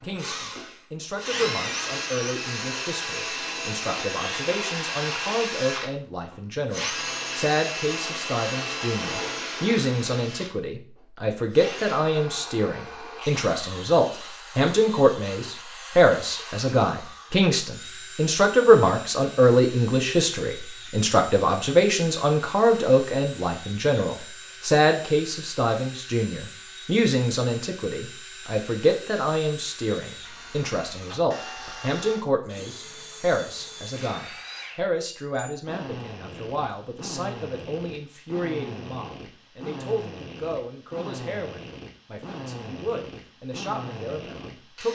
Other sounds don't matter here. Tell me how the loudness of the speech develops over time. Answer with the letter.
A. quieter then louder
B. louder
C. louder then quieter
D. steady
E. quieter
C.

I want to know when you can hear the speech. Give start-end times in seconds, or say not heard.
0.0-44.9.